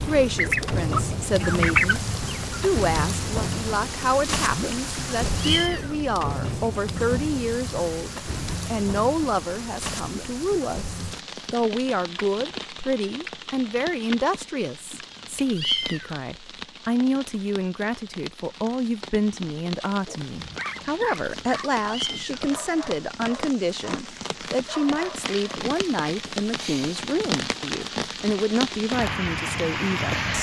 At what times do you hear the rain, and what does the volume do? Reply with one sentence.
You can hear the rain from 0.0 to 30.3 s, getting quieter then louder.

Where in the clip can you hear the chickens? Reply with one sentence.
The chickens can be heard from 0.3 to 2.8 s.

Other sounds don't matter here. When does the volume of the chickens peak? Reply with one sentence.
The loudest moment of the chickens is at 2 seconds.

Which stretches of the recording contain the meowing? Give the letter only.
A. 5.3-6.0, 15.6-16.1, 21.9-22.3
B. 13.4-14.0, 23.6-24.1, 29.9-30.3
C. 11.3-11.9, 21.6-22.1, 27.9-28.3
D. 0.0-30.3
A.